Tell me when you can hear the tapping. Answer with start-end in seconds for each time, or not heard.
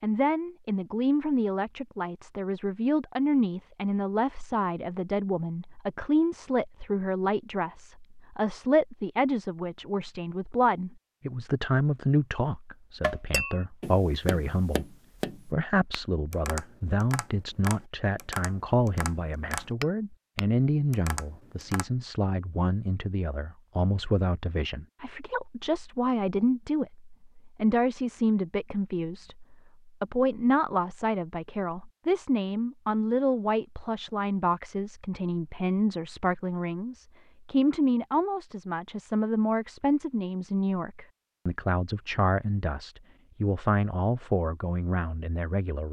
13.0-21.9.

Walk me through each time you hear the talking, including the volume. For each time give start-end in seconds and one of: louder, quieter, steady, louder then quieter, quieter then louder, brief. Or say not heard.
0.0-45.8 steady.